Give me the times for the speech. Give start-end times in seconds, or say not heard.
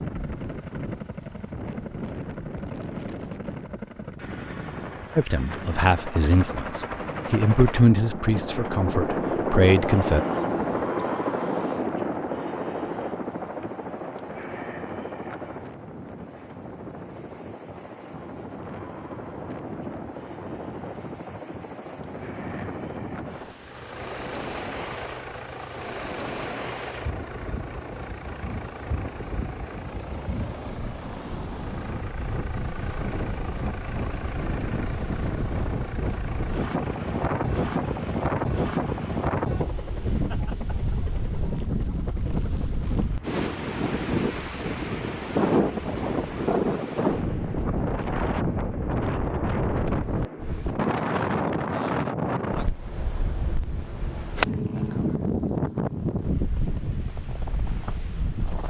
5.2-6.7, 7.3-10.2.